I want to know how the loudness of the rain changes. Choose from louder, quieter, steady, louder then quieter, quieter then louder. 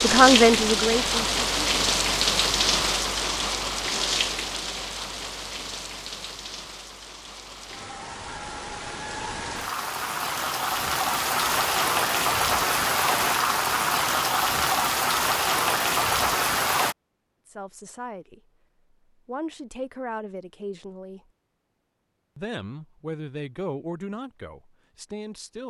quieter then louder.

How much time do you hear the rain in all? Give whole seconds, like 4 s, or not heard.
17 s.